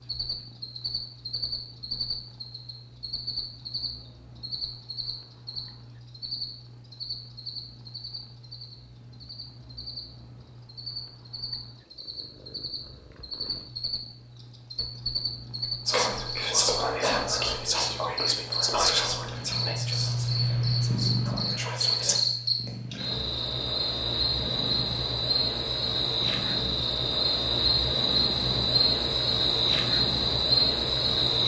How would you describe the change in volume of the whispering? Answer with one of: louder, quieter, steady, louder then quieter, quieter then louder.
quieter.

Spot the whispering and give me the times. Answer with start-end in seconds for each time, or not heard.
15.8-22.2.